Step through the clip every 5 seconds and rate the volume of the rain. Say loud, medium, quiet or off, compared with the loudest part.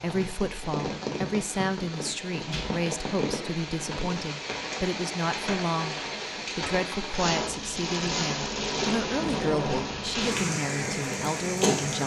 medium, loud, loud.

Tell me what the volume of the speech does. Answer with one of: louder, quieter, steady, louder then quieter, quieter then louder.
steady.